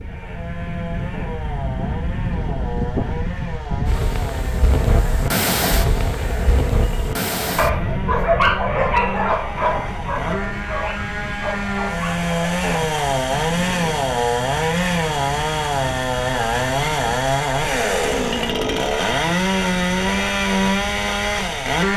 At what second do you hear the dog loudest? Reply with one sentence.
The volume of the dog peaks at 8 seconds.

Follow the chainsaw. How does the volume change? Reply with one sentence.
The loudness of the chainsaw goes up.